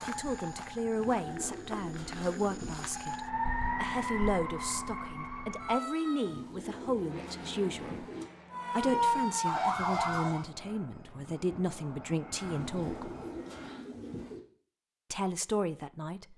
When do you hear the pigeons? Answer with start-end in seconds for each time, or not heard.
0.9-2.9, 6.2-8.2, 12.4-14.4.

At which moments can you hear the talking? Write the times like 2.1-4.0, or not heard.
0.1-8.1, 8.7-13.1, 15.1-16.3.